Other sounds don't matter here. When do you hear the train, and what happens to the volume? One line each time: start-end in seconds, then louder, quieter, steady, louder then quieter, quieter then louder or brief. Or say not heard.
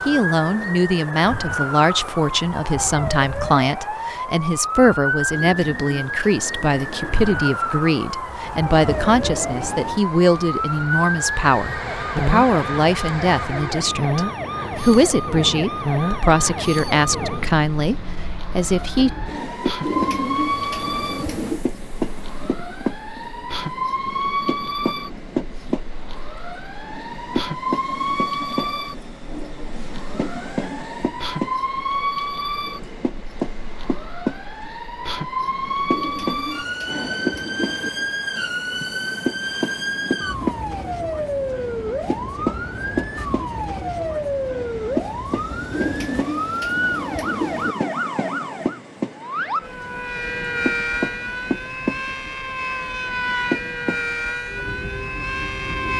8.4-55.9 steady.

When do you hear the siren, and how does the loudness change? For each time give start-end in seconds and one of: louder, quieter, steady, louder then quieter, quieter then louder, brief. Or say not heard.
0.0-55.9 steady.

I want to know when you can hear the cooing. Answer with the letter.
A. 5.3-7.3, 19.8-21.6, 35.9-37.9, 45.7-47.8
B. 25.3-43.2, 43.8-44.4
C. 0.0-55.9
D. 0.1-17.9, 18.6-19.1
A.